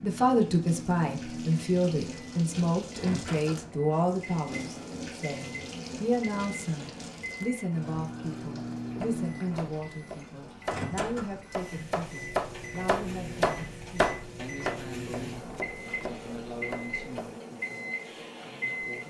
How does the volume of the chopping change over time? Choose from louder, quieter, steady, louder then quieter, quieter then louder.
louder then quieter.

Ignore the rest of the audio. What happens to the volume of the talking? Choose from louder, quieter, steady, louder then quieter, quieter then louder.
quieter.